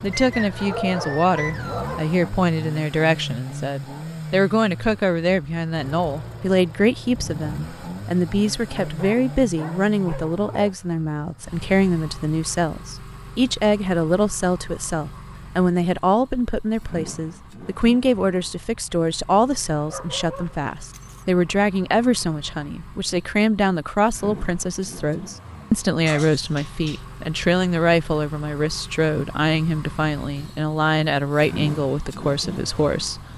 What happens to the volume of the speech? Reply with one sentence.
The volume of the speech stays about the same.